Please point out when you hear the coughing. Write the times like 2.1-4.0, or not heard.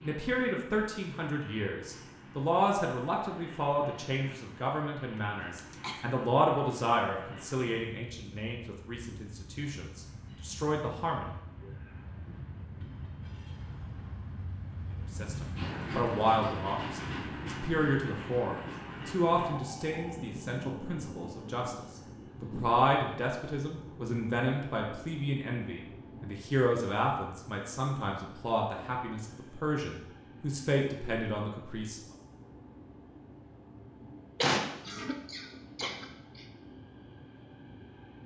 5.5-6.1, 34.4-36.5.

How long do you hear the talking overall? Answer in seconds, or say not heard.
28 s.